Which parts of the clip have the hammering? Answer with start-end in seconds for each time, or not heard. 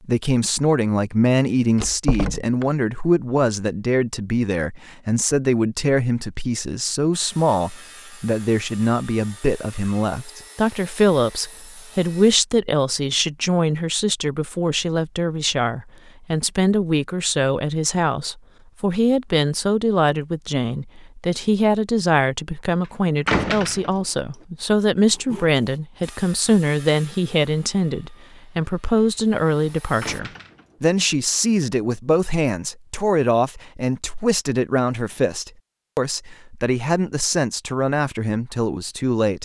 not heard.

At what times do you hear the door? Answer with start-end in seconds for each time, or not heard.
1.8-2.6, 23.2-24.1, 30.0-30.8.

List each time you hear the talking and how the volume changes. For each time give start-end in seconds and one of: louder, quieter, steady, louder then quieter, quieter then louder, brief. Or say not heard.
0.1-39.3 steady.